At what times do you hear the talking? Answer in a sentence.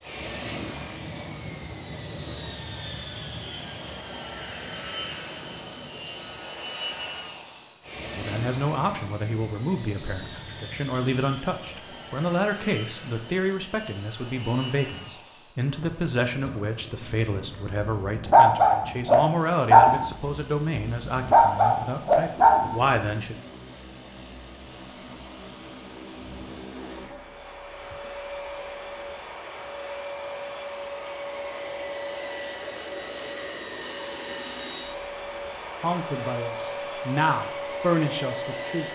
You can hear the talking from 8.2 to 23.4 s and from 35.8 to 38.9 s.